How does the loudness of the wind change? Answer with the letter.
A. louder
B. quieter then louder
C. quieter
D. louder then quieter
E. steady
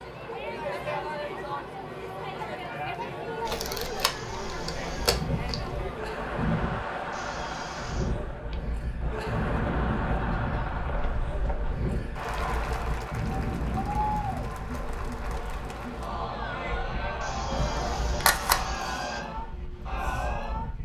C.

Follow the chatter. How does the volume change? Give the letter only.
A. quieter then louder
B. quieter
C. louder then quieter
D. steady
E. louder
D.